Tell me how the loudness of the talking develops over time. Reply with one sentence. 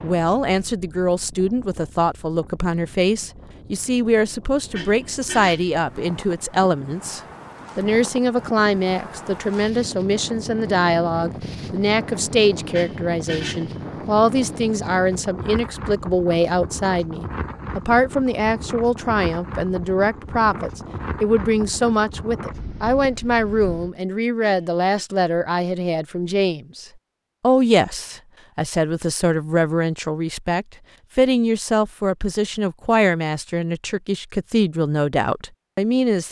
The loudness of the talking stays about the same.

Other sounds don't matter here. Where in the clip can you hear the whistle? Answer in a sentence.
You can't hear the whistle here.